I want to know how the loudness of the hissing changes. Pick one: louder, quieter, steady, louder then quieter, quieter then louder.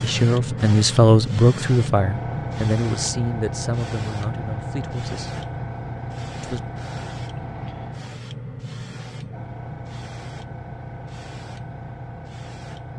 quieter.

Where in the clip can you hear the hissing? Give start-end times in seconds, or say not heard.
0.0-12.9.